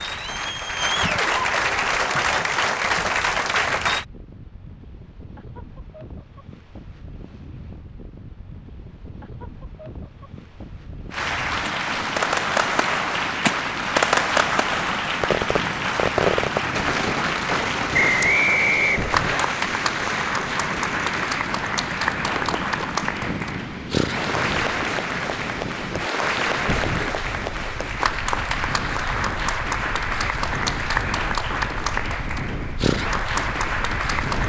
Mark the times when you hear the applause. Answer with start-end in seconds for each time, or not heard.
0.0-4.0, 11.1-34.4.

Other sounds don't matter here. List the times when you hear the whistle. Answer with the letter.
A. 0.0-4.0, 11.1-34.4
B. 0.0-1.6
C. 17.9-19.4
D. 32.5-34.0
C.